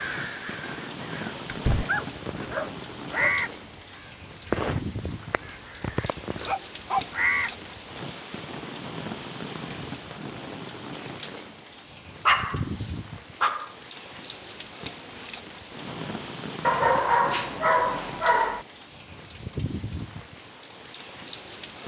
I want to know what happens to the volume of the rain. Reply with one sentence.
The volume of the rain stays about the same.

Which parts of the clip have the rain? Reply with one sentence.
The rain can be heard from 0.0 to 21.8 s.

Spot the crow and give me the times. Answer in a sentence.
The crow can be heard from 0.0 to 7.5 s.